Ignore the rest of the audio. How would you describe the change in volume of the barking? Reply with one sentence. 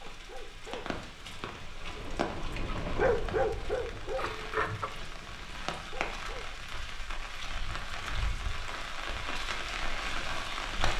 The loudness of the barking goes up, then down.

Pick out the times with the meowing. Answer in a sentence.
You can hear the meowing from 4.2 to 4.9 s.